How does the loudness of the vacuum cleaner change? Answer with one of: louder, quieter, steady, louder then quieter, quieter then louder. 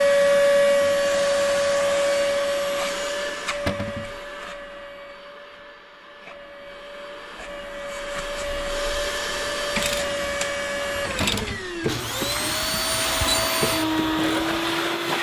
quieter then louder.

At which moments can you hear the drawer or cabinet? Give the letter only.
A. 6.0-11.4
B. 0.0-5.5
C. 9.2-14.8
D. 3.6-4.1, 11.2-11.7
D.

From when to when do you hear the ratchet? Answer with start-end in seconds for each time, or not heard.
9.2-14.8.